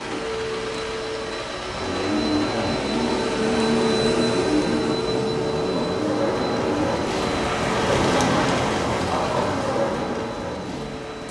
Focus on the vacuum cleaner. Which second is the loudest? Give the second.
4 s.